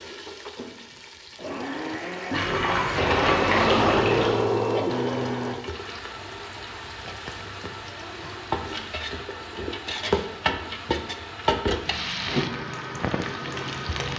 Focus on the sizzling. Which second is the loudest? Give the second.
12 s.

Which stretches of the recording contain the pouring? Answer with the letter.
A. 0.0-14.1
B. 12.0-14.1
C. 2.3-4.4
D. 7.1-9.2
C.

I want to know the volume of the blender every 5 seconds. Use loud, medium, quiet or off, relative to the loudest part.
loud, medium, quiet.